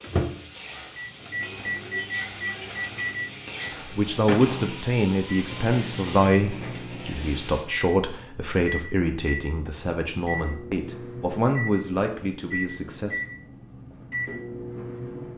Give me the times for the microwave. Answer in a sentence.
The microwave can be heard from 0.0 to 15.3 s.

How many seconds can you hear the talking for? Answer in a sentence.
The talking can be heard for 9 seconds in total.